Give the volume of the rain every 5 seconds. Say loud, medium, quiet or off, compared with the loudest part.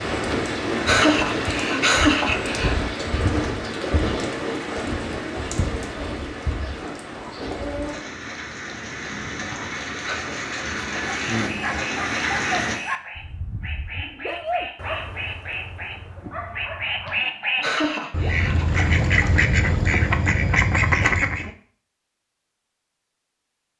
loud, medium, loud, off, off.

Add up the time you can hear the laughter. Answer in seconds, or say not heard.
5 s.